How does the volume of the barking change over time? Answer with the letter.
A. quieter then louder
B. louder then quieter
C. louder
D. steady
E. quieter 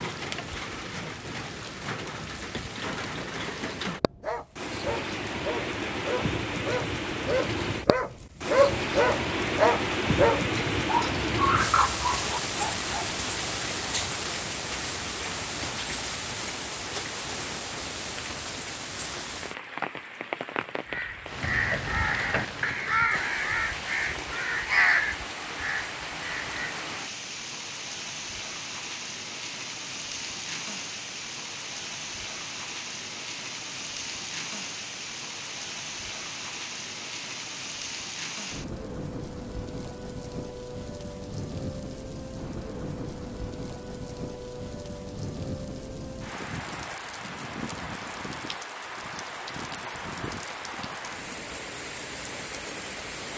C.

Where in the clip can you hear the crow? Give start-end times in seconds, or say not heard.
20.9-26.8.